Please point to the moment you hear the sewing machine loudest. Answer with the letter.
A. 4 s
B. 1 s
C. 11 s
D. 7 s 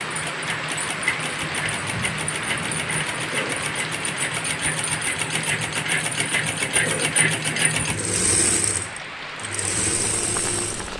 D.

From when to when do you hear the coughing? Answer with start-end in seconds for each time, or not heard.
3.3-3.7, 6.8-7.2.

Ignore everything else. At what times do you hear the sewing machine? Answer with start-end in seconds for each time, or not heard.
0.0-10.9.